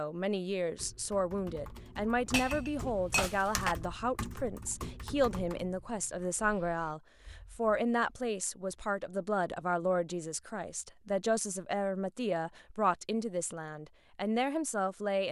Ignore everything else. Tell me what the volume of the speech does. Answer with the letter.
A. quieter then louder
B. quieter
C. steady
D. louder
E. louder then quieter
C.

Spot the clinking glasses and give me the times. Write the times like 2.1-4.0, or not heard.
2.3-3.8.